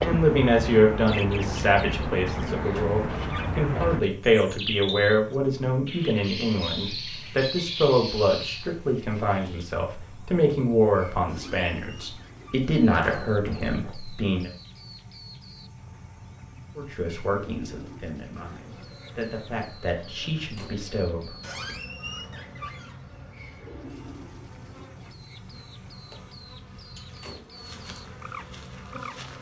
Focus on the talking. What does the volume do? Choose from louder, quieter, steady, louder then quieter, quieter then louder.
quieter.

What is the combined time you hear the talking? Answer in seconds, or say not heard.
19 s.